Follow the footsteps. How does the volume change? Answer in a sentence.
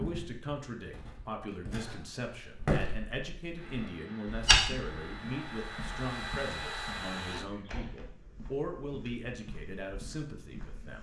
The loudness of the footsteps goes up, then down.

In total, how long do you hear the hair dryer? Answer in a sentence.
The hair dryer can be heard for 4 seconds in total.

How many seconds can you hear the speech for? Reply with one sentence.
The speech can be heard for 11 seconds in total.